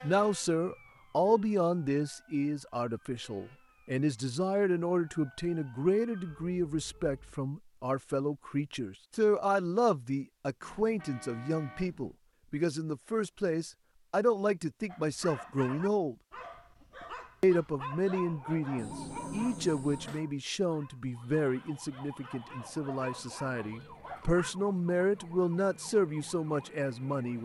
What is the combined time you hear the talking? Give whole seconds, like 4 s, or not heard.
26 s.